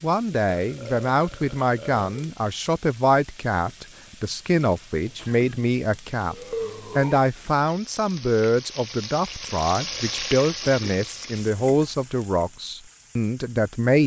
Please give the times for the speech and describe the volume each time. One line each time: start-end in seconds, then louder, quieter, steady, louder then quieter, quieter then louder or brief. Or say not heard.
0.0-14.0 steady.